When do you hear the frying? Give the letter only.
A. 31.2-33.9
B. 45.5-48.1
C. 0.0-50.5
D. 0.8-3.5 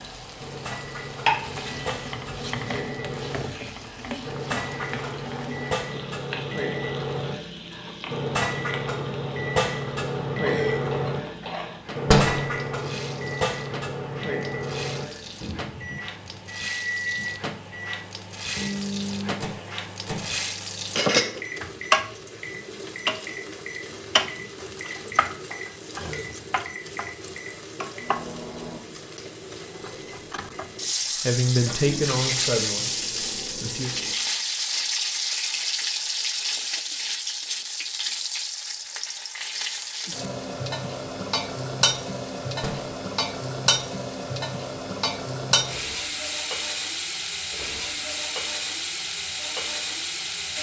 C.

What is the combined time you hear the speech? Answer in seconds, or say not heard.
3 s.